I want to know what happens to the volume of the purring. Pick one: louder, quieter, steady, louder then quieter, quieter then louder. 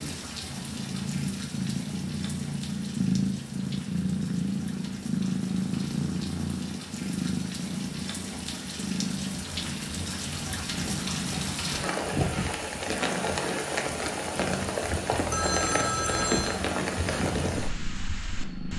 quieter.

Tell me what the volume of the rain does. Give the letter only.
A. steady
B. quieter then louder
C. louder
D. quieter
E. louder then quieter
C.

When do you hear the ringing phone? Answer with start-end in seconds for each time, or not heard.
15.1-16.6.